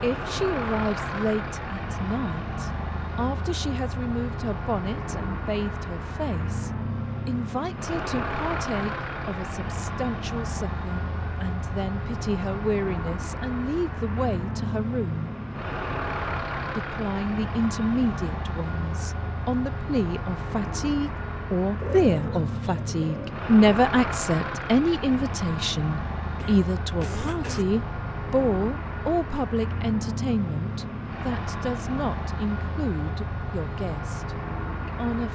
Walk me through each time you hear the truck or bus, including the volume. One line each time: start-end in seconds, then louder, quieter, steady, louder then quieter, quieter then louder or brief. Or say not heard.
0.0-35.2 steady.